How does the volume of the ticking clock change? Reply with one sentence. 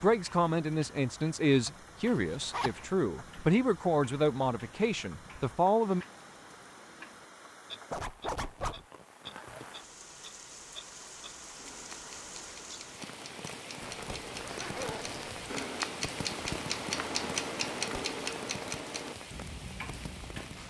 The loudness of the ticking clock goes up.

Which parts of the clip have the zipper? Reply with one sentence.
The zipper can be heard from 2.2 to 2.9 s, from 7.9 to 8.8 s and from 13.8 to 15.7 s.